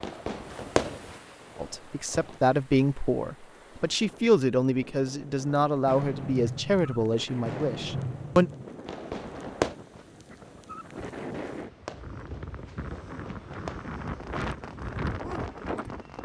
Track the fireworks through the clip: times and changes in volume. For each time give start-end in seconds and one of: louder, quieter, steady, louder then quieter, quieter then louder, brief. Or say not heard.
0.0-2.4 brief
5.8-16.2 quieter.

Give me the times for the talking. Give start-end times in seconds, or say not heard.
1.6-8.5.